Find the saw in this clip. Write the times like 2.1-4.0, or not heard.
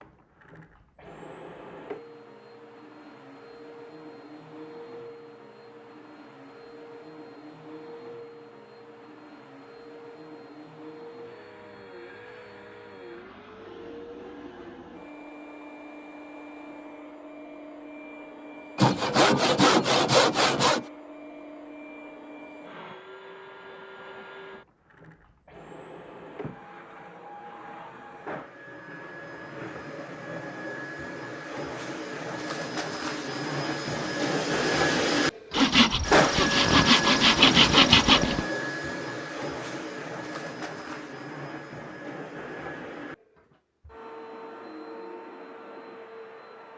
18.8-20.9, 35.5-38.5.